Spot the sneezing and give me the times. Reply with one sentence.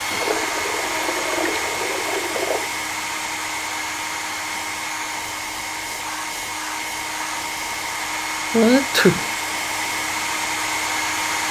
You can hear the sneezing from 8.5 to 9.3 s.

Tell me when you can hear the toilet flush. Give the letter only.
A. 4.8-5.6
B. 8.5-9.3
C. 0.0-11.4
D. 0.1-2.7
D.